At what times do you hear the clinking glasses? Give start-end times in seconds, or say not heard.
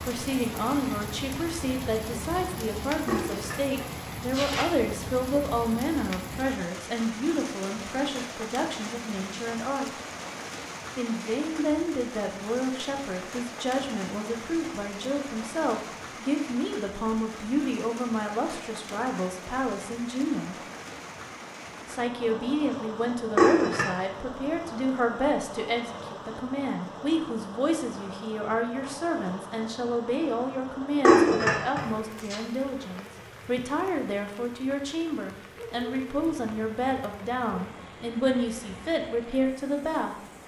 3.0-4.7, 23.4-23.9, 31.1-32.4.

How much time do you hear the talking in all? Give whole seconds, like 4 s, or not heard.
38 s.